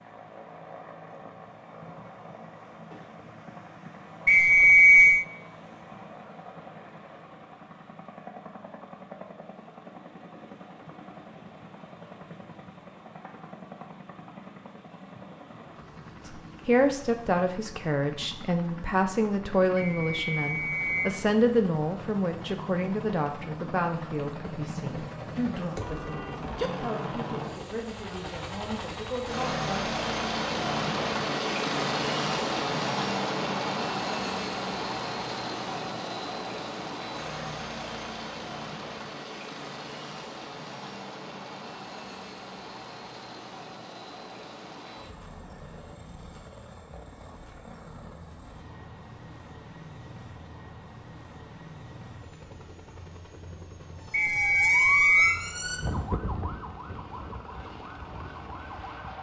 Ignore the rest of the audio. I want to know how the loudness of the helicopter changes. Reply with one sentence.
The loudness of the helicopter goes up, then down.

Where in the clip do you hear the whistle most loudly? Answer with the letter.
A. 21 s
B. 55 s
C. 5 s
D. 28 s
C.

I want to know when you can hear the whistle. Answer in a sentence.
You can hear the whistle from 4.2 to 5.2 s, from 19.8 to 21.1 s and from 54.1 to 55.4 s.